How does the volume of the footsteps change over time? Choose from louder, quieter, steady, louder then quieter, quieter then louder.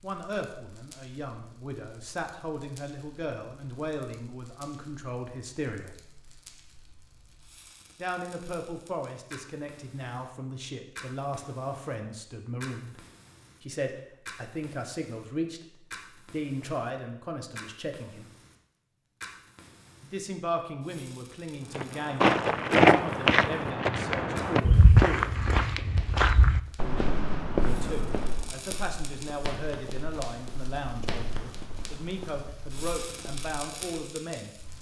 quieter.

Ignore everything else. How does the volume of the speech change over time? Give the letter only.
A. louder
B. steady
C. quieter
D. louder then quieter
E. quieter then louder
B.